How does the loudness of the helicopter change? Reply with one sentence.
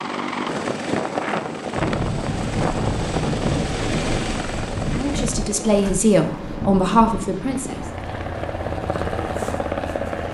The volume of the helicopter goes down, then up.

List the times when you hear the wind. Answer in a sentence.
The wind can be heard from 1.8 to 10.2 s.